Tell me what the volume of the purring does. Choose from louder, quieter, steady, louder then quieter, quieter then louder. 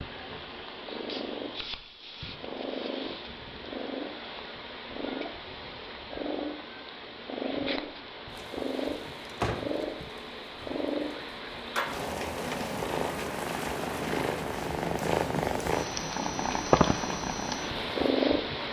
louder.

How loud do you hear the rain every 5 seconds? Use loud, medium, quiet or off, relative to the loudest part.
off, loud, loud, loud.